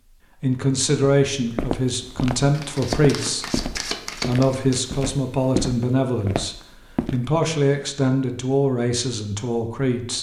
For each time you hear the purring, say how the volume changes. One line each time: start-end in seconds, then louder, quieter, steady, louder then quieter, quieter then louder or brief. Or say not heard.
not heard.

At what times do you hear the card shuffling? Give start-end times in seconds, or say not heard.
2.5-4.9.